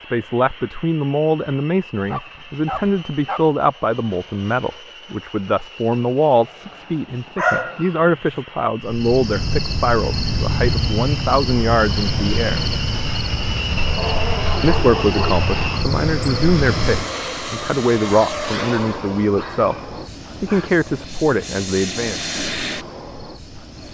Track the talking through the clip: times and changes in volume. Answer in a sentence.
The talking can be heard from 0.1 to 12.8 s, at a steady volume; and from 14.6 to 22.2 s, at a steady volume.